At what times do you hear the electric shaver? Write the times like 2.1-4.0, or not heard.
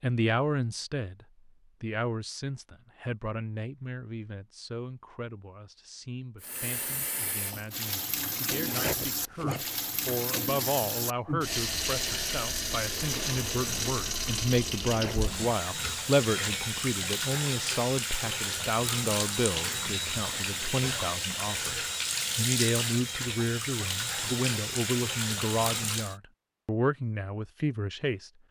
not heard.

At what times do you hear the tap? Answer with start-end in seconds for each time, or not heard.
6.4-26.1.